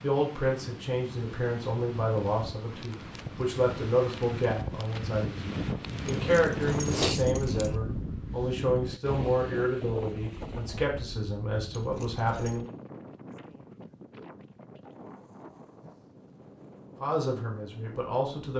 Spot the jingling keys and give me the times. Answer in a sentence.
The jingling keys can be heard from 6.2 to 7.8 s and from 11.7 to 12.6 s.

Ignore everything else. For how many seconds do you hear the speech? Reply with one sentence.
You can hear the speech for 14 seconds altogether.